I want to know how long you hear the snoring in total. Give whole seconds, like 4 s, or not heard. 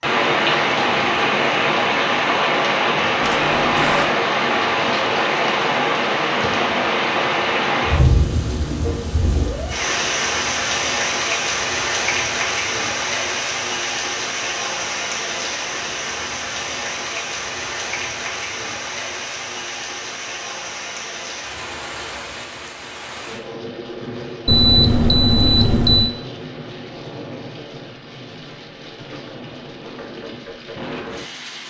not heard.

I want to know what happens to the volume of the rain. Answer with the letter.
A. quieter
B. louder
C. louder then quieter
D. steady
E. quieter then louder
A.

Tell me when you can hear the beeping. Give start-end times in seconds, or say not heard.
3.2-4.1, 24.4-26.1.